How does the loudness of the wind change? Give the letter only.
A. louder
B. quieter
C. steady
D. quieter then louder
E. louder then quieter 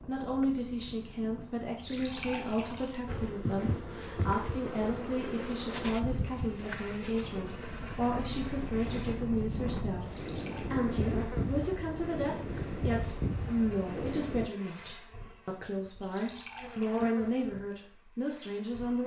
A.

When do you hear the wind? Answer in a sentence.
The wind can be heard from 0.0 to 14.5 s.